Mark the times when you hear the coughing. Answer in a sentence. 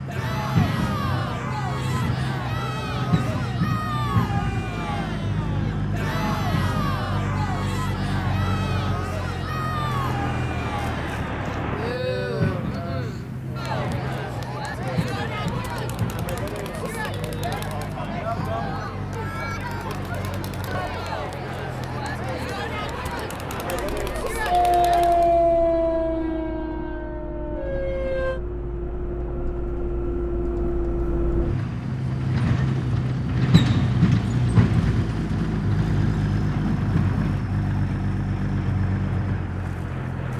The coughing can't be heard in this clip.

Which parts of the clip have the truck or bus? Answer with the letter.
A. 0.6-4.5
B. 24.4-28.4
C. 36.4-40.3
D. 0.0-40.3
D.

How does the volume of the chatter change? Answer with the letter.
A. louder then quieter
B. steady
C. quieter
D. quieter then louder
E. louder
B.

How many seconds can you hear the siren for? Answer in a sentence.
The siren can be heard for 4 seconds in total.